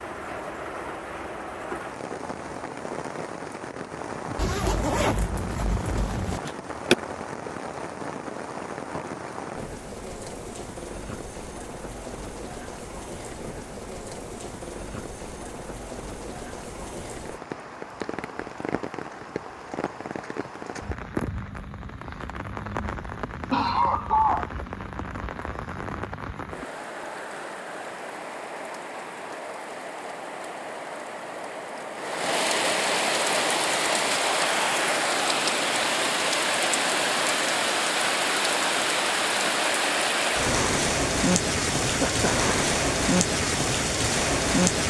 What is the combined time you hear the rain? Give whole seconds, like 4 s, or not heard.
45 s.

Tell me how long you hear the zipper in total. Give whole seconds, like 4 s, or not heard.
2 s.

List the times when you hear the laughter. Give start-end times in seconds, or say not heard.
6.5-7.0, 23.5-24.5, 41.8-42.5.